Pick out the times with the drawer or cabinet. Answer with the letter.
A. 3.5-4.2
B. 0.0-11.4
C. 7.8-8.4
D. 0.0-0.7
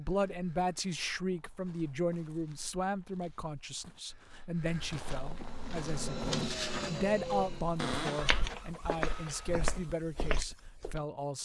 C.